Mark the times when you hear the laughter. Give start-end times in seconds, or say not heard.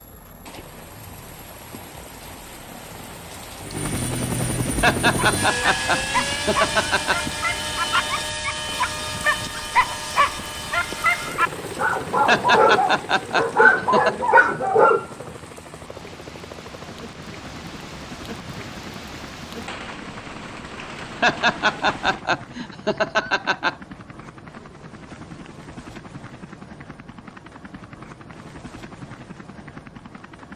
4.8-7.2, 12.2-14.2, 21.2-23.8.